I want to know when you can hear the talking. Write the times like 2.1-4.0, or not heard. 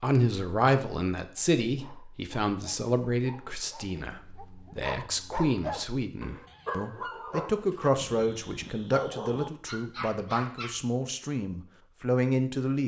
0.0-12.8.